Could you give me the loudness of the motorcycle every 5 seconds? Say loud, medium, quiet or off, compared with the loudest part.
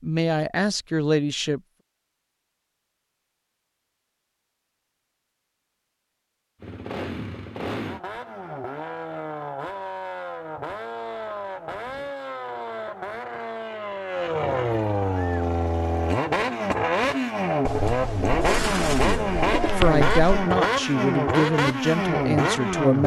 off, medium, medium, loud, loud.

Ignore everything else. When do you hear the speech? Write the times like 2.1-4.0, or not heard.
0.0-1.6, 19.0-23.0.